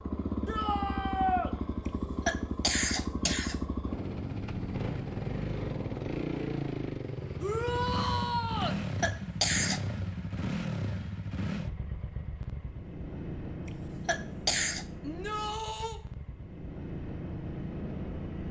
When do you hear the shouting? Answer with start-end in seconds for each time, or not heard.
0.5-1.5, 7.4-8.8, 15.0-16.0.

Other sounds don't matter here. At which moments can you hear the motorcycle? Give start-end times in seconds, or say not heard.
0.0-18.4.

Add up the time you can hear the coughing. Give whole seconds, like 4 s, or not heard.
4 s.